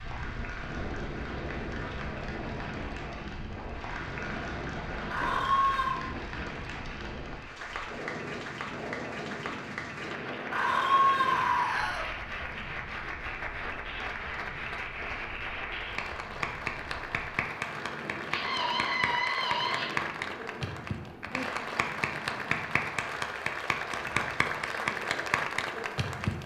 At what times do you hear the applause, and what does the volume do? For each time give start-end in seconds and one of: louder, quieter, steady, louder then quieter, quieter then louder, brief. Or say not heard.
0.0-26.4 louder.